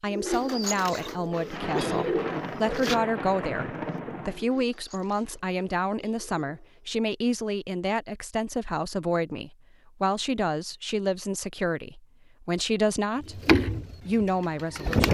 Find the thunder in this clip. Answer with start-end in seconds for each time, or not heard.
1.5-4.5.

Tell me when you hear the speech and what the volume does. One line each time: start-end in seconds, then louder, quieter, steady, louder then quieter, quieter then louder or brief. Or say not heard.
0.0-15.0 steady.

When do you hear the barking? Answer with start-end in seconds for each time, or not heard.
not heard.